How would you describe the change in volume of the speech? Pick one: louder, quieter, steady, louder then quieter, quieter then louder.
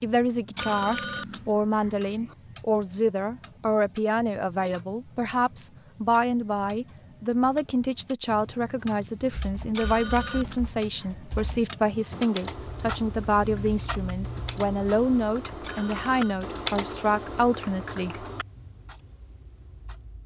steady.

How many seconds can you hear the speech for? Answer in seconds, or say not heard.
18 s.